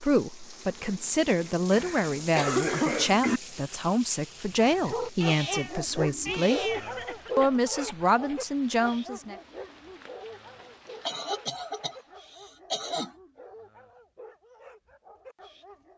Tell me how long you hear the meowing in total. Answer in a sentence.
The meowing can be heard for 2 seconds in total.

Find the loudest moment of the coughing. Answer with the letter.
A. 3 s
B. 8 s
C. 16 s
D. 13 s
A.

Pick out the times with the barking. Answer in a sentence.
You can hear the barking from 4.3 to 15.9 s.